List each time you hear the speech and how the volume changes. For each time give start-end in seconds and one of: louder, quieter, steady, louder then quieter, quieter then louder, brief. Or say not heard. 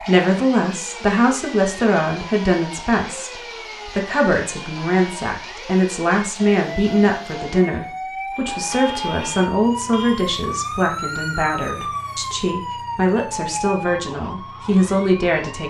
0.0-15.6 steady.